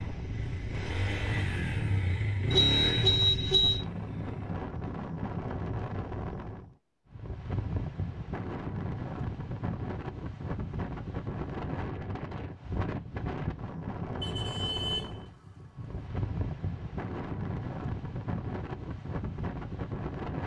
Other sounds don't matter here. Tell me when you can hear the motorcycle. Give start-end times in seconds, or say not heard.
0.1-4.7.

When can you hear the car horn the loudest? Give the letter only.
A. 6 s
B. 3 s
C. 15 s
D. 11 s
B.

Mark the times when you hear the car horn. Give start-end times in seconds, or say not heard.
2.5-3.8, 14.2-16.1.